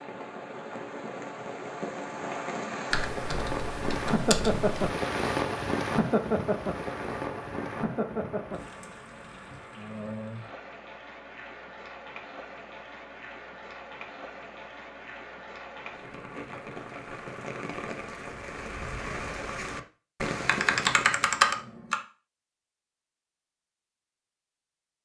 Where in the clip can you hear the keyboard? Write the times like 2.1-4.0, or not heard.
2.9-4.9, 20.4-22.0.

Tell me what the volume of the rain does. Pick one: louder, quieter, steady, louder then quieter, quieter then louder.
quieter then louder.